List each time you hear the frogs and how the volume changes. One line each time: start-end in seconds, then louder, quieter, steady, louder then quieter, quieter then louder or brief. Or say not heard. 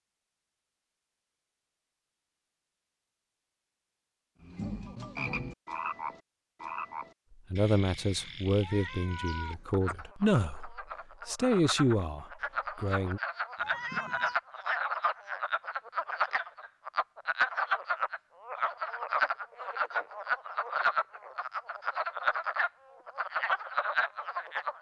4.4-24.7 louder.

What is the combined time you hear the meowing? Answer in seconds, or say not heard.
2 s.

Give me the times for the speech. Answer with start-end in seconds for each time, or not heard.
7.5-13.2.